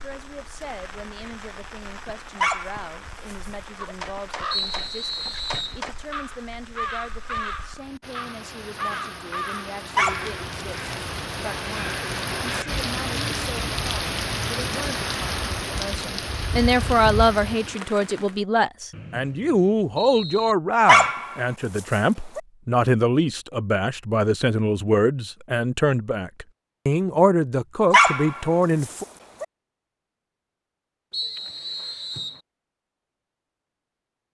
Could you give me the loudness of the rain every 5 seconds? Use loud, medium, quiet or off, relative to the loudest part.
quiet, quiet, loud, loud, off, off, off.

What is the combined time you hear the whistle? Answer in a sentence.
The whistle can be heard for 4 seconds in total.